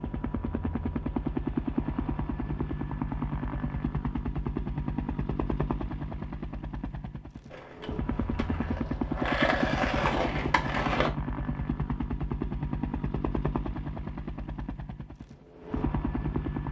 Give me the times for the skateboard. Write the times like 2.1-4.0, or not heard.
7.5-11.1.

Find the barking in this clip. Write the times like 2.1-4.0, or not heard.
not heard.